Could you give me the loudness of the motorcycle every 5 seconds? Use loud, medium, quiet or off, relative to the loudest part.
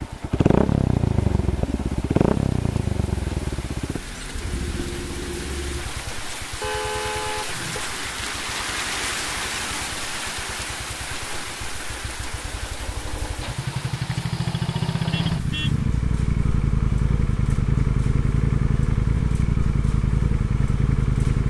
loud, quiet, medium, loud, loud.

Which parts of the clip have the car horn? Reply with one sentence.
The car horn can be heard from 6.6 to 7.8 s and from 15.1 to 15.8 s.